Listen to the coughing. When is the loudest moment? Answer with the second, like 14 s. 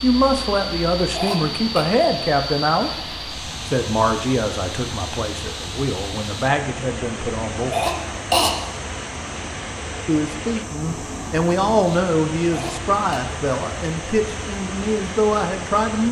8 s.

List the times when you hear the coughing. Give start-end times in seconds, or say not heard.
1.1-1.9, 7.7-8.6, 12.5-13.2.